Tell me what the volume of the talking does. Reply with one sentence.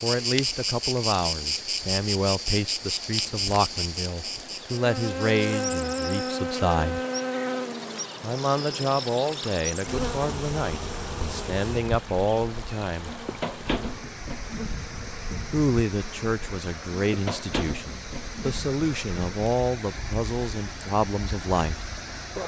The volume of the talking stays about the same.